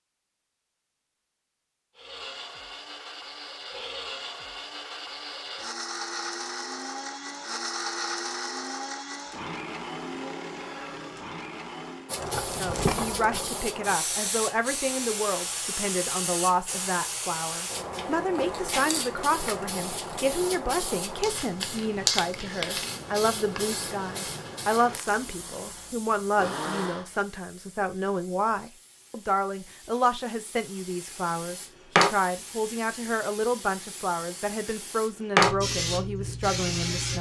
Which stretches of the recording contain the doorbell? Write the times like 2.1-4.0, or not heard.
not heard.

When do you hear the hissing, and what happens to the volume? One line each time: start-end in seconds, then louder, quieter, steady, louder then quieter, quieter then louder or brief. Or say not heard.
12.1-37.1 quieter then louder.